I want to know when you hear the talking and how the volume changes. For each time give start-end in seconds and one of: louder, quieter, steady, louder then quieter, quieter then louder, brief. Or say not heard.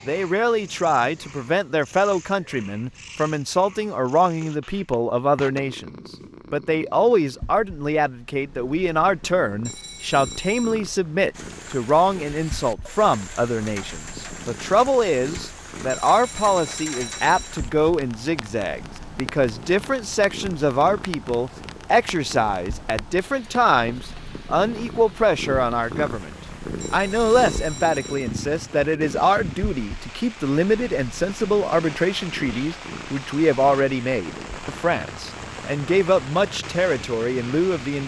0.1-26.3 steady
26.9-38.0 steady.